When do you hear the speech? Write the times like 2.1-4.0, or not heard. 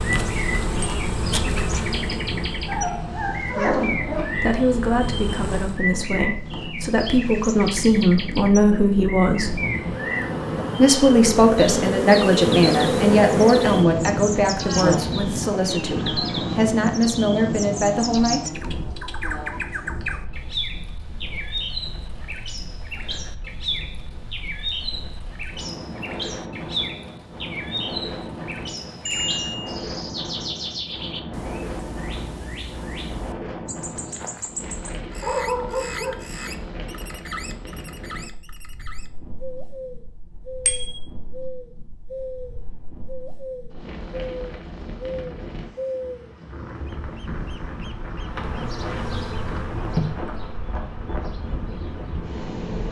3.5-9.6, 10.8-18.5.